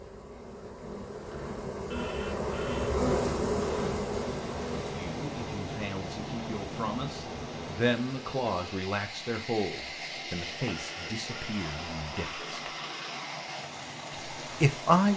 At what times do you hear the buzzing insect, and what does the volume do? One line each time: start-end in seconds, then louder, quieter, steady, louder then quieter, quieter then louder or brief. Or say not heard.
0.0-8.8 louder then quieter.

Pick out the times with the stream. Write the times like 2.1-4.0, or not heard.
3.5-15.1.